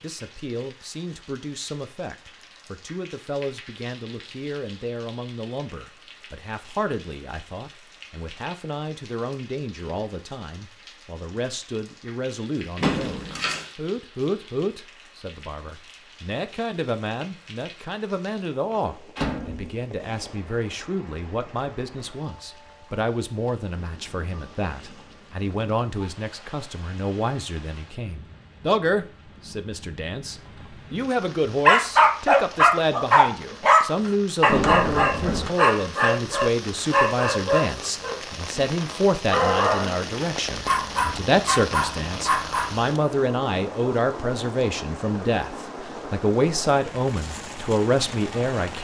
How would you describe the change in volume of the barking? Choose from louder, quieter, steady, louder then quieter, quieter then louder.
quieter.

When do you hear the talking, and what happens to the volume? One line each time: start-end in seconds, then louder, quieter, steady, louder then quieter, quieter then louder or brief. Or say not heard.
0.0-48.7 louder.